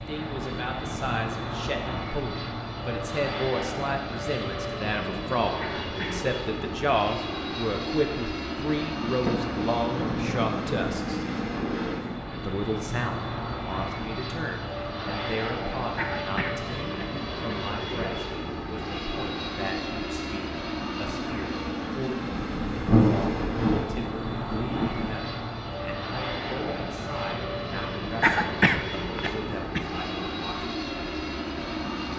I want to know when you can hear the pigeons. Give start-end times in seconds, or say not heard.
not heard.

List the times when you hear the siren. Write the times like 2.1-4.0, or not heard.
not heard.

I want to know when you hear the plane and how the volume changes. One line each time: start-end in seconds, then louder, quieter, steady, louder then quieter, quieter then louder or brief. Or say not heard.
0.0-32.1 steady.